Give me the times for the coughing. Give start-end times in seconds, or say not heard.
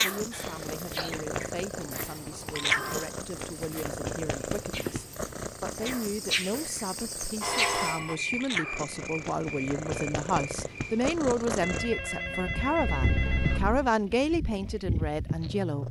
0.3-1.2, 12.8-13.9.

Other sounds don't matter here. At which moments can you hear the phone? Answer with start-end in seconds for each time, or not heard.
1.9-3.1, 7.4-8.2, 11.6-13.6.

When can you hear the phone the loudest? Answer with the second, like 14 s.
8 s.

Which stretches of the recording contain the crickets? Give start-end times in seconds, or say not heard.
0.0-11.1.